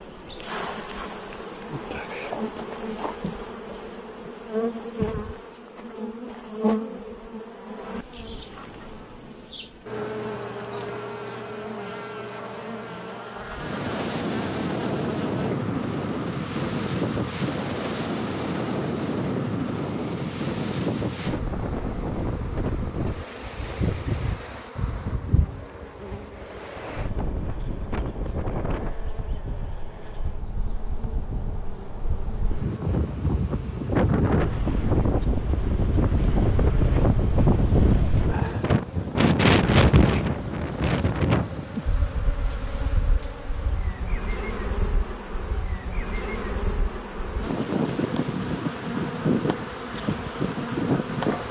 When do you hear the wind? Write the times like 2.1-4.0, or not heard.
13.4-51.4.